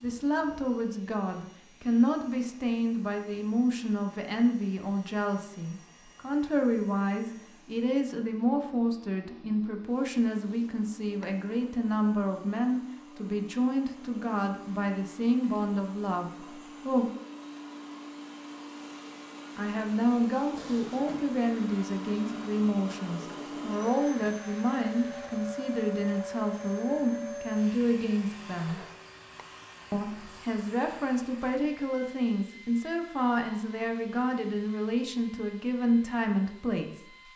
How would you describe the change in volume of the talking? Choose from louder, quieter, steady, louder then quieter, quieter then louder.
steady.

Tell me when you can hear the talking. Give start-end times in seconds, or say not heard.
0.0-17.1, 19.6-28.8, 29.9-37.0.